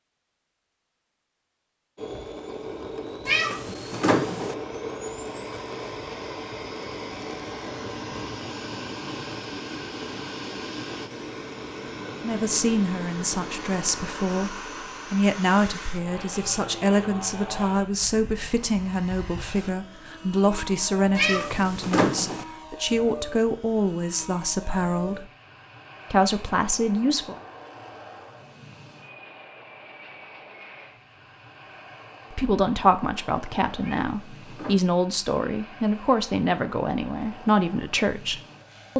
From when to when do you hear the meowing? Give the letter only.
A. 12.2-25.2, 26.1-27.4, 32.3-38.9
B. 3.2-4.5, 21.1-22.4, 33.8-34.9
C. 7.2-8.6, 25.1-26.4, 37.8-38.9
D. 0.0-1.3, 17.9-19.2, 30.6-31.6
B.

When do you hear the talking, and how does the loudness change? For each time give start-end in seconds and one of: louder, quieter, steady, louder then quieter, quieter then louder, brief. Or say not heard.
12.2-25.2 steady
26.1-27.4 brief
32.3-38.9 steady.